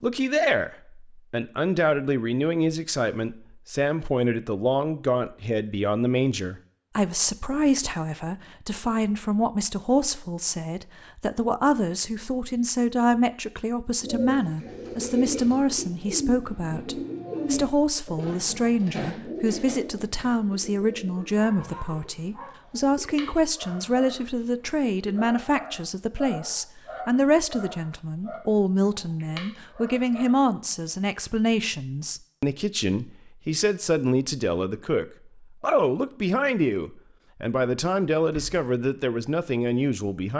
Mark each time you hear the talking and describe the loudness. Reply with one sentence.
The talking can be heard from 0.0 to 40.3 s, at a steady volume.